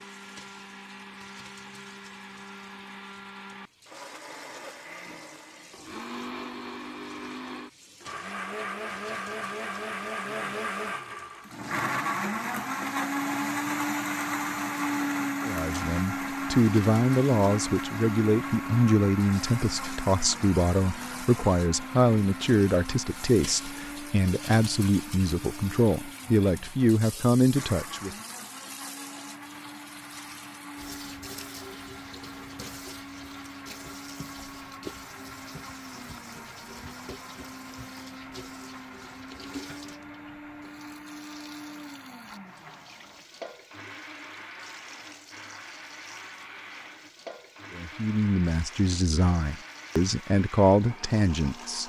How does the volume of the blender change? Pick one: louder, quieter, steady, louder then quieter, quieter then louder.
louder then quieter.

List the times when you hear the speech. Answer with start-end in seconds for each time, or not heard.
15.4-28.1, 47.8-51.8.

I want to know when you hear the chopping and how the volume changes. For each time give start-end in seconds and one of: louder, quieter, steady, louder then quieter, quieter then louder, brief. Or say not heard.
not heard.